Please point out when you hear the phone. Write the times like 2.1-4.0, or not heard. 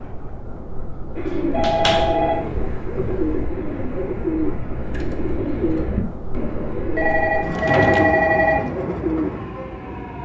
1.5-3.5, 7.0-8.7.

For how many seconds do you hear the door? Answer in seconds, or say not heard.
2 s.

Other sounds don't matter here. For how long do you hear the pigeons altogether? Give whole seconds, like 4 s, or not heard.
8 s.